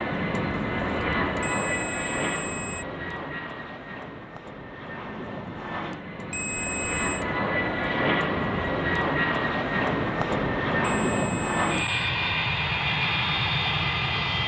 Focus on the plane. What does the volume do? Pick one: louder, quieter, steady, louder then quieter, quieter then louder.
quieter then louder.